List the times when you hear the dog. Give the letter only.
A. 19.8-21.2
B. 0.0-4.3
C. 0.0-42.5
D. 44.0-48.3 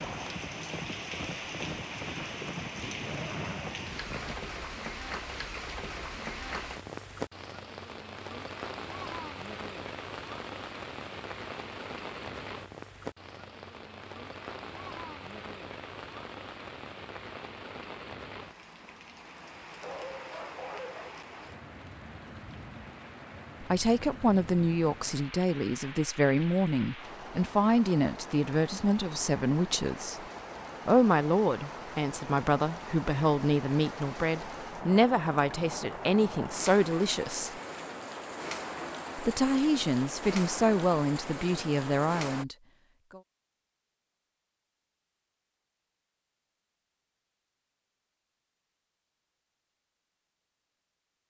A.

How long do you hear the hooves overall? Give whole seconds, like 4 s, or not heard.
4 s.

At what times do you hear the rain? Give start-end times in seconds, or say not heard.
0.0-42.5.